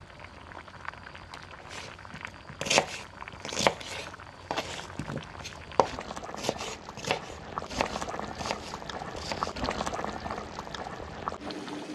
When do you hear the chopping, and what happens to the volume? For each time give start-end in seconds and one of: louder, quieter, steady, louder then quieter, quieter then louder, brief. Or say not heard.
1.7-9.6 quieter.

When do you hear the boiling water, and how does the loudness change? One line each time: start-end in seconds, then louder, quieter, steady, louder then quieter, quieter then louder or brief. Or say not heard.
0.0-11.9 louder.